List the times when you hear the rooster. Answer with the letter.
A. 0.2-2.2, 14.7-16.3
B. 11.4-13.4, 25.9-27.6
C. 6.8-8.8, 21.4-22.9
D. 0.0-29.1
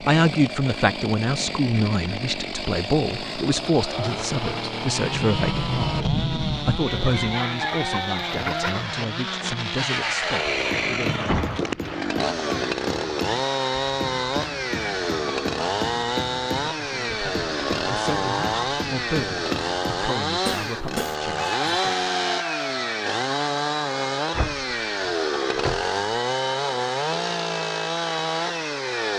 C.